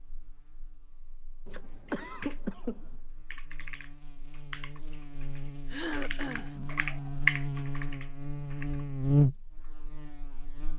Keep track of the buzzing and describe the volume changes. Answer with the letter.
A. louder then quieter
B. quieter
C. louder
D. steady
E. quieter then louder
C.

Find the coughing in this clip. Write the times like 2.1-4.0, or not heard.
1.4-3.0, 5.7-6.5.